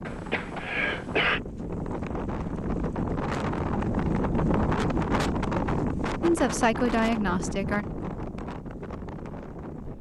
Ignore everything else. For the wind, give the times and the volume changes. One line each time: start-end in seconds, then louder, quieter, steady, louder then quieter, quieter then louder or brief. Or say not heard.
0.0-9.9 louder then quieter.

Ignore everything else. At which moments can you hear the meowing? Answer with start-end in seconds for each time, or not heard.
not heard.